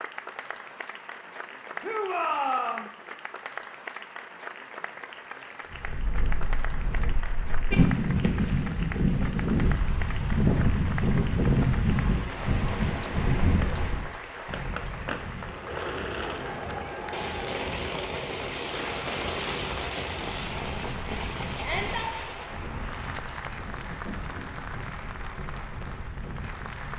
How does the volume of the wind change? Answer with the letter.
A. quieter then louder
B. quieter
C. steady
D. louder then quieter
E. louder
B.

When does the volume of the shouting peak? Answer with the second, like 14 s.
2 s.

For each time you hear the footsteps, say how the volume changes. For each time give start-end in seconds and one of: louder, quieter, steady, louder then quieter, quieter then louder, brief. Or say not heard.
not heard.